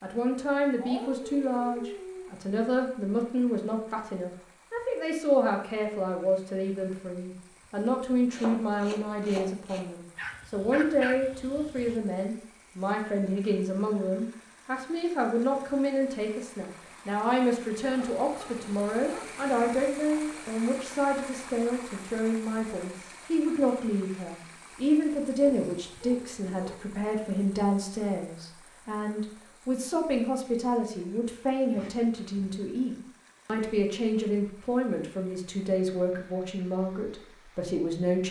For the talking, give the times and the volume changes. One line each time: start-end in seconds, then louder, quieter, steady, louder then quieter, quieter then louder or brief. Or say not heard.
0.0-38.2 steady.